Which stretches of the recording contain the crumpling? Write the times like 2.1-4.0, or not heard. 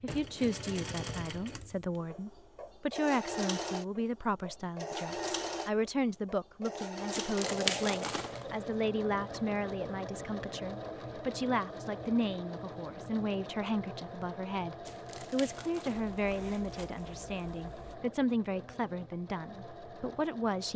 7.1-8.4, 14.8-16.9.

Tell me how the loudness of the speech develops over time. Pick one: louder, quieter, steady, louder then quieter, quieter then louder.
steady.